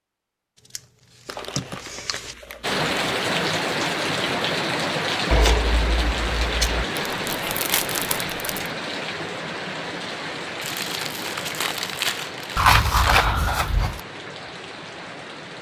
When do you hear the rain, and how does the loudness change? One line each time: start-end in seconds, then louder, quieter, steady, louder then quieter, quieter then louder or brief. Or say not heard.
2.6-15.5 quieter.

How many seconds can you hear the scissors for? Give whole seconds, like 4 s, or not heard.
4 s.